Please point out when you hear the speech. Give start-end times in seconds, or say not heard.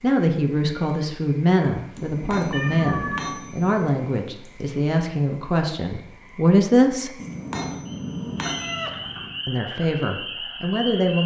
0.0-7.1, 9.4-11.2.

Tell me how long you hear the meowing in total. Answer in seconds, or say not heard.
2 s.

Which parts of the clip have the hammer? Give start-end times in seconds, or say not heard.
1.9-4.0, 7.2-8.8.